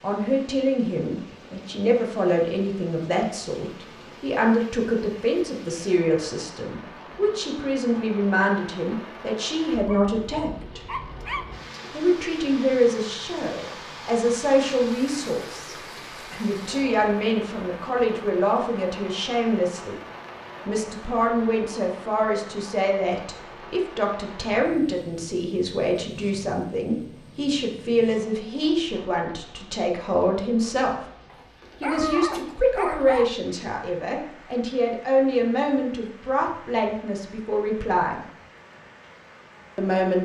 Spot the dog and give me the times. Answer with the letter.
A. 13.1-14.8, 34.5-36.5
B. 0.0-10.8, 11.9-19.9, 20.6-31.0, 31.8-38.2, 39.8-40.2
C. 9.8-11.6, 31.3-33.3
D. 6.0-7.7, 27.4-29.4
C.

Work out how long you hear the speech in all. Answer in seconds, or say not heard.
36 s.